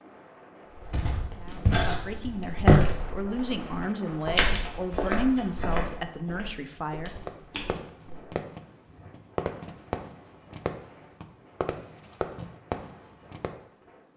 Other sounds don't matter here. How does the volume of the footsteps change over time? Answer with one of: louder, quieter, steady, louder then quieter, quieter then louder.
louder then quieter.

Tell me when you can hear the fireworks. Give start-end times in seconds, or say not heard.
7.2-13.6.